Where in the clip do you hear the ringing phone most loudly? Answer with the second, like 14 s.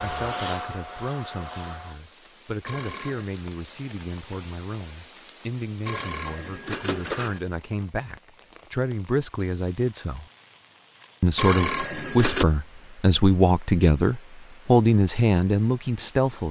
12 s.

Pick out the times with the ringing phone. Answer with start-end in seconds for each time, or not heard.
2.6-3.2, 5.8-7.4, 11.3-12.4.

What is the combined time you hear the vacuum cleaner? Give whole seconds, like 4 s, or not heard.
2 s.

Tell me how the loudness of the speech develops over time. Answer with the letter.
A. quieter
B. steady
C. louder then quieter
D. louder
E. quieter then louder
D.